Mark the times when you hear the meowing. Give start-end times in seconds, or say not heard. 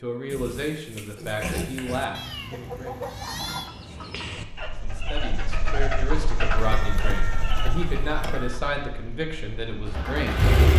2.1-3.7, 6.5-8.6.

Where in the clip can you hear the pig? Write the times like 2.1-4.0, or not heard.
0.3-2.0.